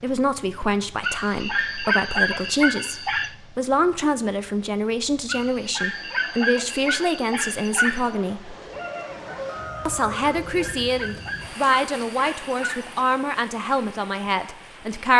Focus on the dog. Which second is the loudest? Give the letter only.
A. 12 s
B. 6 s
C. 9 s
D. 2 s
D.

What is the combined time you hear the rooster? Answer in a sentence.
The rooster can be heard for 2 seconds in total.